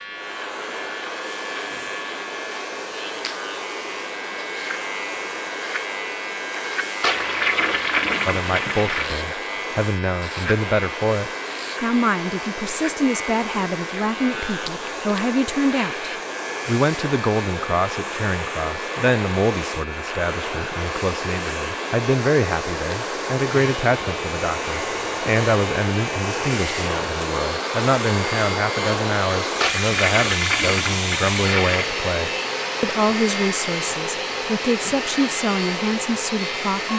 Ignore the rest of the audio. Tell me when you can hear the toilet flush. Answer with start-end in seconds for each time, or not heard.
7.0-9.2, 29.6-31.9.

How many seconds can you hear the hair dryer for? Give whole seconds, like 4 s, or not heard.
37 s.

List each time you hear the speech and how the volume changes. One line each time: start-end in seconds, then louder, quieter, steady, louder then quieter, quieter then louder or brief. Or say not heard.
8.2-36.9 steady.